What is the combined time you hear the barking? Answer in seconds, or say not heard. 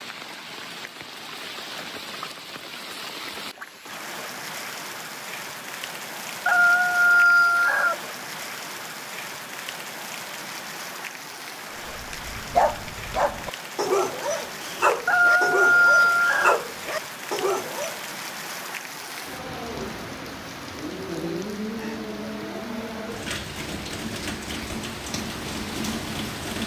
6 s.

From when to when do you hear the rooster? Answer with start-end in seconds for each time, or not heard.
6.5-8.0, 15.1-16.6.